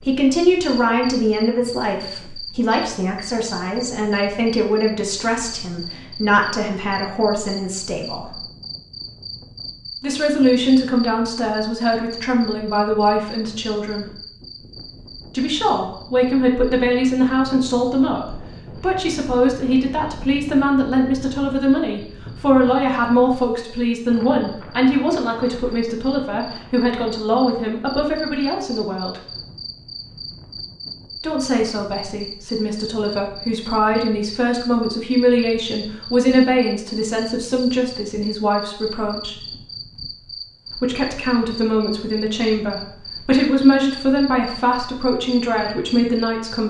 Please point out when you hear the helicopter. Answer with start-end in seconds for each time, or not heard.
not heard.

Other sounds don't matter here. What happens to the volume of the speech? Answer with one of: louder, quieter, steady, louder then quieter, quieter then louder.
steady.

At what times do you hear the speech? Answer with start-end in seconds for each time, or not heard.
0.1-8.3, 10.0-14.2, 15.3-29.2, 31.2-39.4, 40.8-46.6.